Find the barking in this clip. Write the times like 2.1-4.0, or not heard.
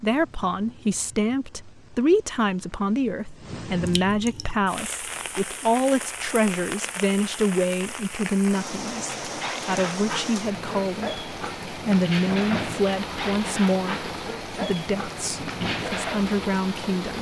8.8-16.4.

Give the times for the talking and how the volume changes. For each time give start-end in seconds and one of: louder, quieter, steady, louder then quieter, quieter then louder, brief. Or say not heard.
0.0-17.1 steady.